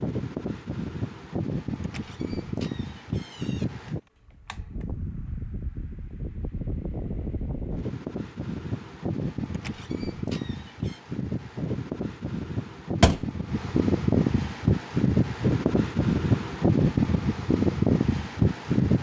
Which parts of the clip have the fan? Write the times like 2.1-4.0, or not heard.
0.0-18.9.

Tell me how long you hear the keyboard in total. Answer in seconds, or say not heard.
not heard.